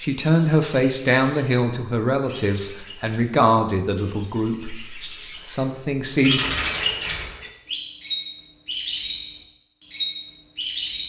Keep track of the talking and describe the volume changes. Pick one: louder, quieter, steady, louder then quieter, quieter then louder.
quieter.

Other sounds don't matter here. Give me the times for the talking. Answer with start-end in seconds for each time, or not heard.
0.0-6.5.